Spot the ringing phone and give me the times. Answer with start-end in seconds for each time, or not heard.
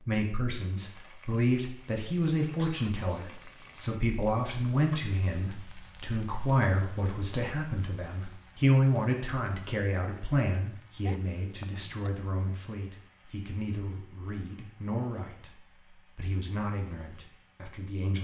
not heard.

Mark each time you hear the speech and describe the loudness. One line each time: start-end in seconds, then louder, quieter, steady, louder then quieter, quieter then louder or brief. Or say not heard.
0.0-18.2 quieter.